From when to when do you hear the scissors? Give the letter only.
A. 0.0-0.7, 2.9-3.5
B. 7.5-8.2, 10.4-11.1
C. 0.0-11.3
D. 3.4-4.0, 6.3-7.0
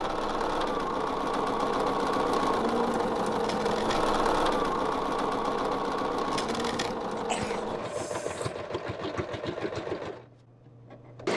D.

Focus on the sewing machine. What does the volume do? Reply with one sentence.
The volume of the sewing machine goes down.